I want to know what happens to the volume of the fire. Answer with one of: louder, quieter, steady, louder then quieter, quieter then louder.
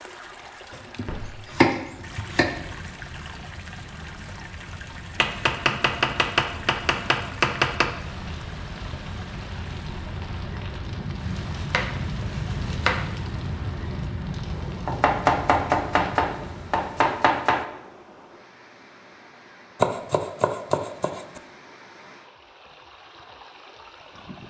louder.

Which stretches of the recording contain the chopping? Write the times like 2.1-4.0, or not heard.
0.7-2.5, 5.2-7.9, 11.7-13.1, 14.8-17.6, 19.8-21.4.